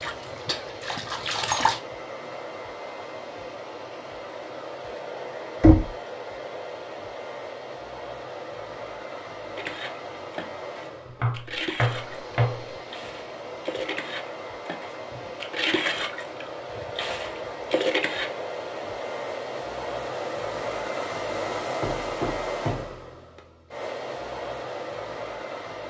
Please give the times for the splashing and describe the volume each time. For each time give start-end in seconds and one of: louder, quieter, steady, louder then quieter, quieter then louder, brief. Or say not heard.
0.0-1.8 brief
9.6-18.4 louder.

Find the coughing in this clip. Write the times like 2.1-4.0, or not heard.
not heard.